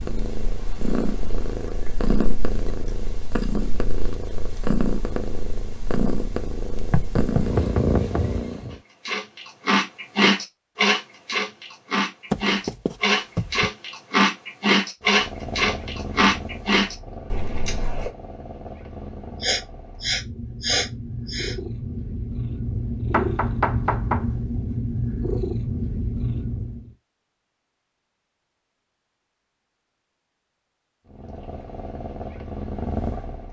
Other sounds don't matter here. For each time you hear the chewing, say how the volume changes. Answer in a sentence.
You can hear the chewing from 8.7 to 18.1 s, at a steady volume.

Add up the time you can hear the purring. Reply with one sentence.
The purring can be heard for 23 seconds in total.